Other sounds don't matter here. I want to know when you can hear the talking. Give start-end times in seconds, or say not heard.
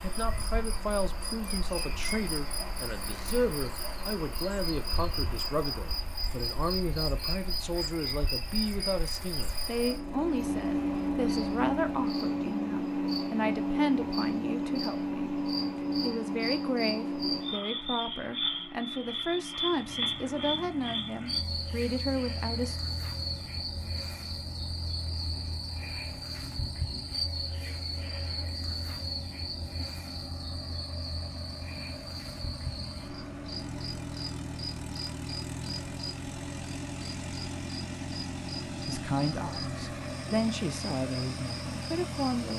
0.0-22.8, 38.9-42.5.